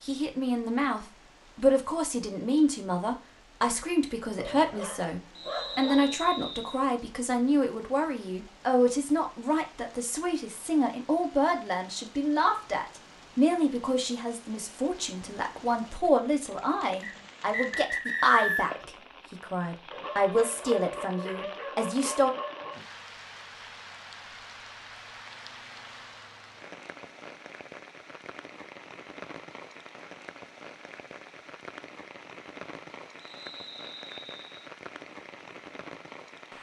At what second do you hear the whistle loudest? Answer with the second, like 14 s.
18 s.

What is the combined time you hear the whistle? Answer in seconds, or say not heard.
5 s.